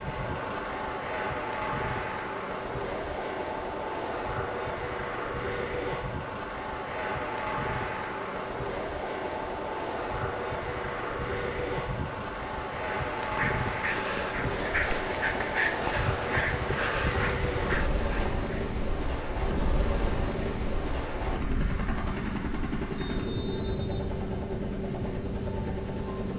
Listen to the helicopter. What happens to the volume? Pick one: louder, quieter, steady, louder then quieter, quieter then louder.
steady.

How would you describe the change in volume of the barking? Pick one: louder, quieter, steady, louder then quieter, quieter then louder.
steady.